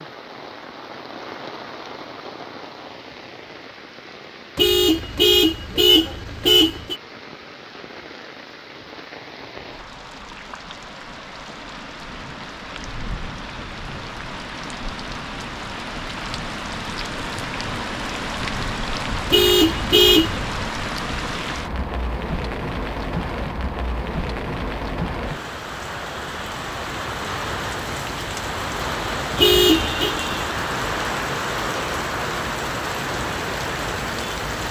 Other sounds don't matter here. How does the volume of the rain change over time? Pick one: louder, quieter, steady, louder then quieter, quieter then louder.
louder.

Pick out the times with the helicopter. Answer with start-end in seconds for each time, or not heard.
not heard.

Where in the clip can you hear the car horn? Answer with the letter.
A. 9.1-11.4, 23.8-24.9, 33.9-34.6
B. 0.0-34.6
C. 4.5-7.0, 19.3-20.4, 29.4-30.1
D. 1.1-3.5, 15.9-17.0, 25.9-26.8
C.